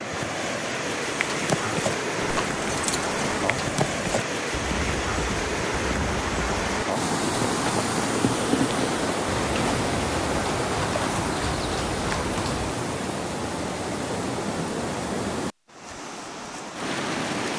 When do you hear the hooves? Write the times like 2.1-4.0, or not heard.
1.1-12.7.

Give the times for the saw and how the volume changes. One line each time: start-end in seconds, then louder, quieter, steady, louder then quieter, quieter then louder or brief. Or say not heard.
not heard.